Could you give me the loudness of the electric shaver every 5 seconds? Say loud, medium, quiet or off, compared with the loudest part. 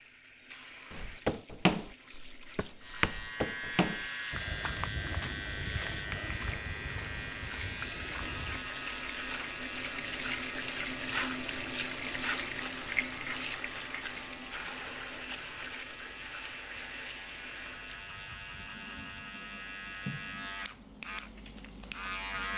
loud, loud, medium, medium, loud.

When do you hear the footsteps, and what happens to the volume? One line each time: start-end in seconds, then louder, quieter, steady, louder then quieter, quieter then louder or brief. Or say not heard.
0.9-8.6 quieter.